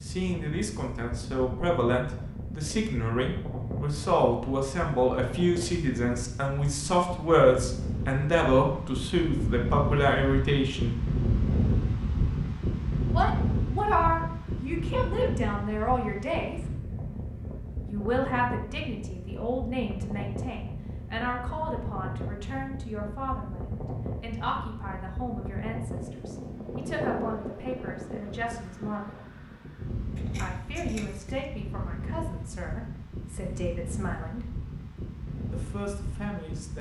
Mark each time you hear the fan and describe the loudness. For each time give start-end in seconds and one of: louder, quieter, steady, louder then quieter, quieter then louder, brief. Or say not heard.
0.0-36.7 louder then quieter.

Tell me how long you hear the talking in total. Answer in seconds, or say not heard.
31 s.